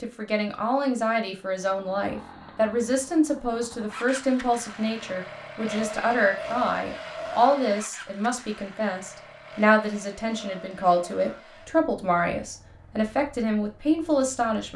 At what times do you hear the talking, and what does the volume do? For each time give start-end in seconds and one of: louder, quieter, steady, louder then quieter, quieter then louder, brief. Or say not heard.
0.0-14.7 steady.